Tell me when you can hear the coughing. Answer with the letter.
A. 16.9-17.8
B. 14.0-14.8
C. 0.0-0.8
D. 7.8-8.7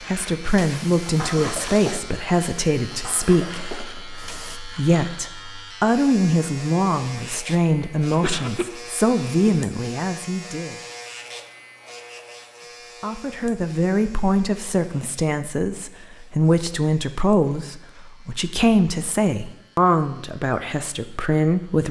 D.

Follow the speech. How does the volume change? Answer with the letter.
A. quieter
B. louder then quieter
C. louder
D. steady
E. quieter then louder
D.